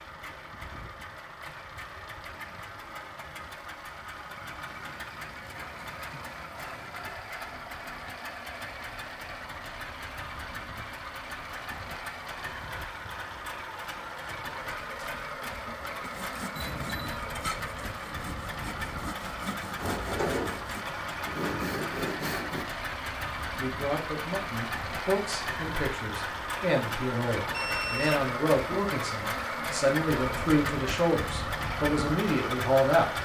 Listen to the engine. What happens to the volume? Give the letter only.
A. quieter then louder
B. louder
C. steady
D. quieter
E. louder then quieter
B.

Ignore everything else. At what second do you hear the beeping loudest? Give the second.
28 s.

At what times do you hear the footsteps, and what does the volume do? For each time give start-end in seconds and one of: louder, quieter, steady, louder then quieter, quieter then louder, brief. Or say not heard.
not heard.